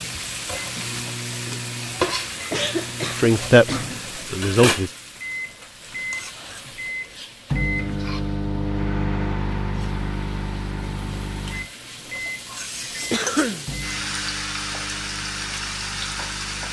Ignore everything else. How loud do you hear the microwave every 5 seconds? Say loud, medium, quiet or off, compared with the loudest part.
medium, loud, medium, quiet.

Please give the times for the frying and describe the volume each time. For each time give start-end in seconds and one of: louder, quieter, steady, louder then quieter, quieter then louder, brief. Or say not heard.
0.0-16.6 quieter then louder.